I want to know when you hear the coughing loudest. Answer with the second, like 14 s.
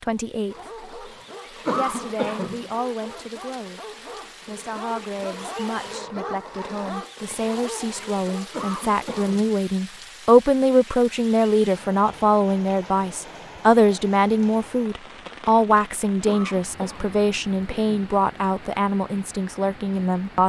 2 s.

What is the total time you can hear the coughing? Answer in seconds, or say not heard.
4 s.